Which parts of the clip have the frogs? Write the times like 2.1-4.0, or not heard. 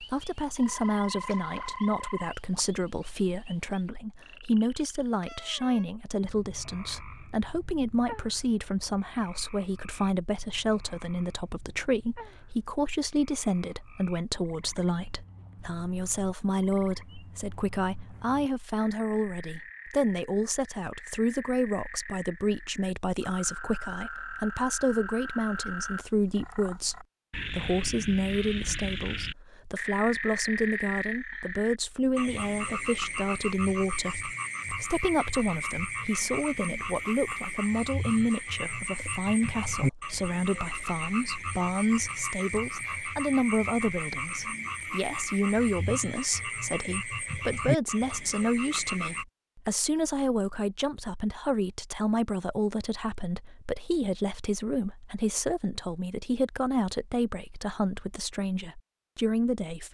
0.0-49.2.